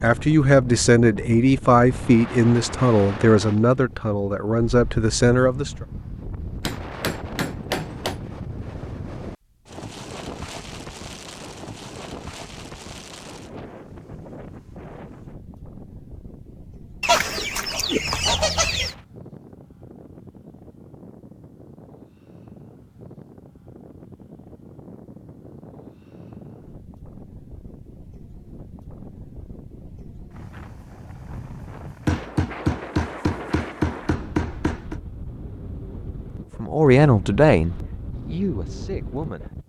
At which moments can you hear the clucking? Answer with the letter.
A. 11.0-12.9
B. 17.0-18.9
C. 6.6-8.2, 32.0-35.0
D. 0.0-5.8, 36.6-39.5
B.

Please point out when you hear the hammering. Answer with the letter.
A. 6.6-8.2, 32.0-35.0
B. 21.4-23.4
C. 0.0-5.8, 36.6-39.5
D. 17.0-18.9
A.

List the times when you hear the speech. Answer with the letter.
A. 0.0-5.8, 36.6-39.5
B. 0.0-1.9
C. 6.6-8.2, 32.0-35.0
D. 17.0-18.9
A.